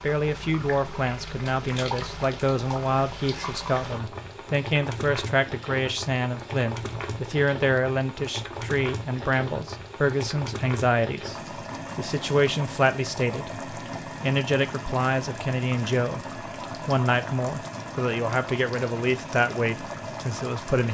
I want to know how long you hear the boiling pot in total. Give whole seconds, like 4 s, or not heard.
21 s.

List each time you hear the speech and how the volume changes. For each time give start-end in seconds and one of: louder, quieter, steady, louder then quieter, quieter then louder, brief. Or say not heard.
0.0-20.8 steady.